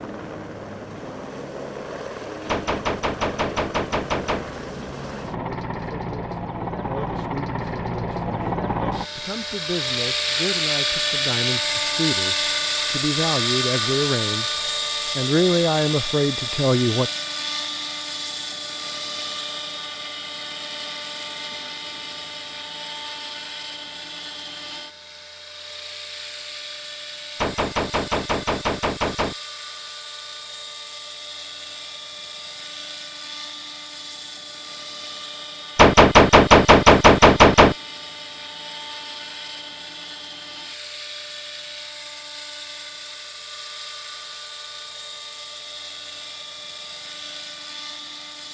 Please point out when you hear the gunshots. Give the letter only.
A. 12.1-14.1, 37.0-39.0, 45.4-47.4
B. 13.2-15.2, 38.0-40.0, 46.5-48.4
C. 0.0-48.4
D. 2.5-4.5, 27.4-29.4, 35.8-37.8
D.